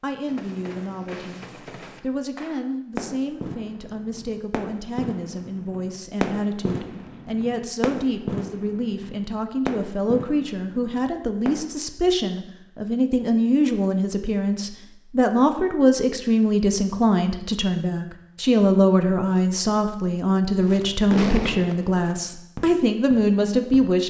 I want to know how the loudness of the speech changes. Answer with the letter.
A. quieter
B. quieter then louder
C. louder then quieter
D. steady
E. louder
E.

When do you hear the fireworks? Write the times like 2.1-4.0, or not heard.
0.2-11.7, 20.6-23.9.